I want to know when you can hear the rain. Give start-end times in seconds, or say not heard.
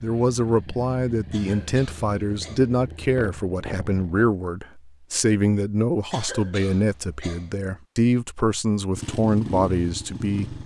not heard.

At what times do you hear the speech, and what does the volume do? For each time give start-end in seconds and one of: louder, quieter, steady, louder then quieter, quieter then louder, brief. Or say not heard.
0.0-10.6 steady.